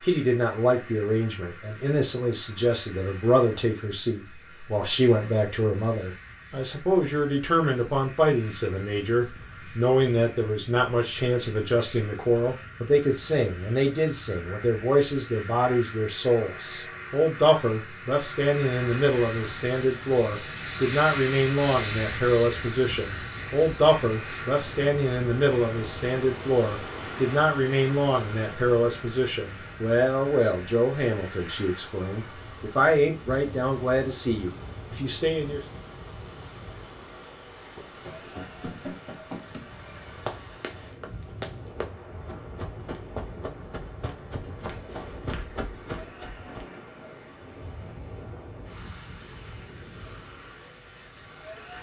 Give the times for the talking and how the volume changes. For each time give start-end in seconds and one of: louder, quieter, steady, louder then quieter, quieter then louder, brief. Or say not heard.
0.0-35.6 steady.